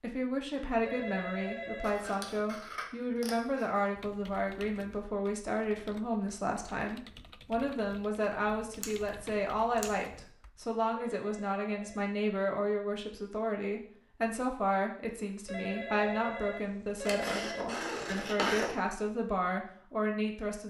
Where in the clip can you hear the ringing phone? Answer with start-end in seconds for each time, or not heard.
0.8-2.1, 10.9-12.1, 15.4-17.6.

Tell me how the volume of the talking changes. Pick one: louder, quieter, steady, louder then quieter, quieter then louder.
steady.